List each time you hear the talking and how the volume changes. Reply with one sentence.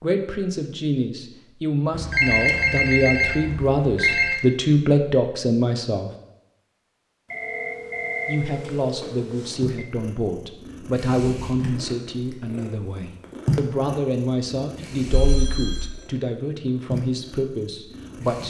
The talking can be heard from 0.0 to 6.1 s, getting louder; and from 8.2 to 18.4 s, at a steady volume.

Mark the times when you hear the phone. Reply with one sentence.
You can hear the phone from 1.9 to 4.4 s, from 7.3 to 9.8 s and from 15.1 to 15.8 s.